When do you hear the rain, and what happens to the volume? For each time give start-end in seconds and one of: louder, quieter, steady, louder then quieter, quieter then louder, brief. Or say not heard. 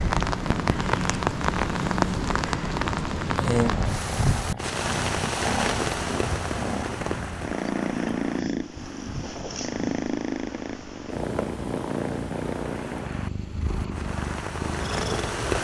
0.0-15.5 quieter then louder.